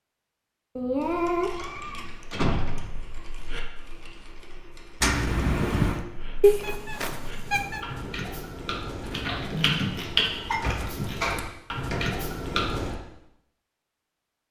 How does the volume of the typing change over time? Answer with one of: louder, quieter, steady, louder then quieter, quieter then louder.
louder.